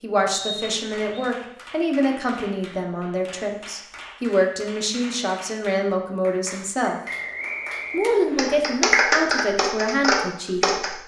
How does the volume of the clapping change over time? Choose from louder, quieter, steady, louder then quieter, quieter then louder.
louder.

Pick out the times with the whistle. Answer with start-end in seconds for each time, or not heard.
0.3-1.3, 7.0-8.6.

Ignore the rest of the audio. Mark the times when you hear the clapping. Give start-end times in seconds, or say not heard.
0.6-10.9.